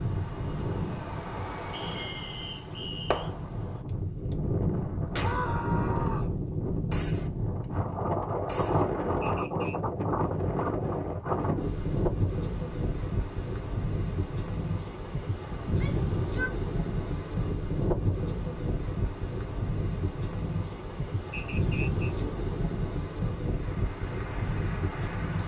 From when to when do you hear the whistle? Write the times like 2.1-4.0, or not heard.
1.7-3.3, 9.2-9.8, 21.3-22.1.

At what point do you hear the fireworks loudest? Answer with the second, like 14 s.
3 s.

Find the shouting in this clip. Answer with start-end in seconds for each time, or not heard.
5.2-6.3, 15.7-16.6.